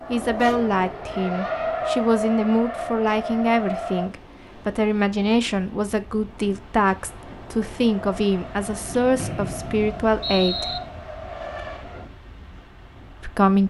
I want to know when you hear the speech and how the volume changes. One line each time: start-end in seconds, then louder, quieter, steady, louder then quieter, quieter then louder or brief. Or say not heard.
0.1-10.8 steady
13.2-13.6 brief.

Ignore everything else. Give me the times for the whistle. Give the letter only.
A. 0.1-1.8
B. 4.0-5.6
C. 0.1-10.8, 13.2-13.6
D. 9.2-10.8
D.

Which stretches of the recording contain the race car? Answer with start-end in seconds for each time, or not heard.
0.0-4.1, 7.8-12.1.